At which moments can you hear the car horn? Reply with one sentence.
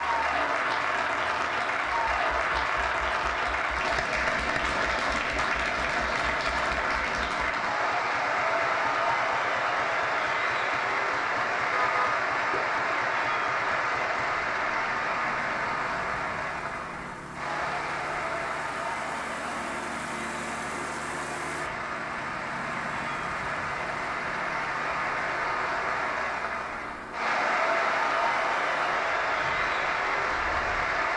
The car horn can be heard from 11.7 to 12.7 s.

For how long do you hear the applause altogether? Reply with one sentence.
The applause can be heard for 31 seconds in total.